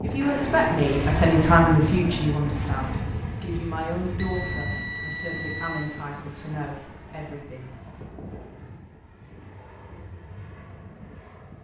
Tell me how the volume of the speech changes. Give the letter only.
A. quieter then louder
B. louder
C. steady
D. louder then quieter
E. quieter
E.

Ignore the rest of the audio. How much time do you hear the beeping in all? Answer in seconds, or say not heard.
2 s.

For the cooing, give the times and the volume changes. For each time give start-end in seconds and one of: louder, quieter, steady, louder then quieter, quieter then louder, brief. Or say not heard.
not heard.